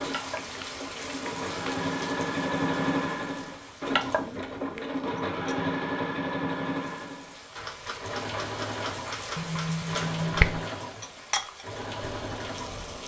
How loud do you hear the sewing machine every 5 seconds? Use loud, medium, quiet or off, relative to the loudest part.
loud, loud, medium.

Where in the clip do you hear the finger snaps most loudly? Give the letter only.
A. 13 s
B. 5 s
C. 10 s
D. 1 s
C.